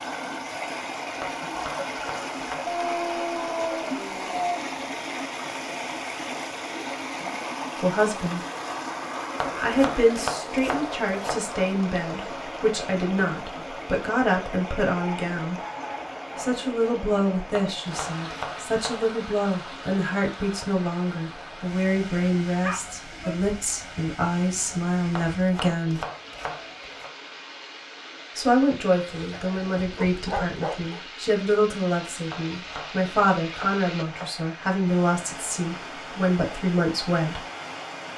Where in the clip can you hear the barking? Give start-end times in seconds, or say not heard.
2.6-4.7, 14.9-16.6, 22.6-23.4, 29.1-31.0.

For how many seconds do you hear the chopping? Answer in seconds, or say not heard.
9 s.